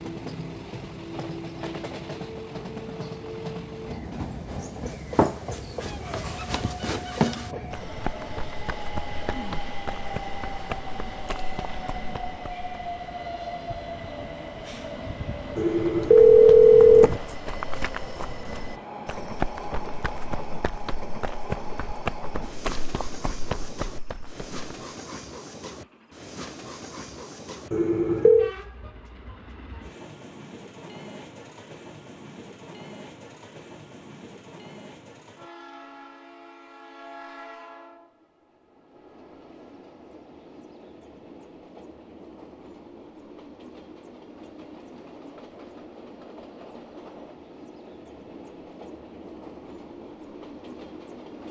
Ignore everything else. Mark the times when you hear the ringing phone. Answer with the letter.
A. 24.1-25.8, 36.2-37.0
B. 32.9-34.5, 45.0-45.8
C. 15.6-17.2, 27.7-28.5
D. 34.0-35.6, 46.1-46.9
C.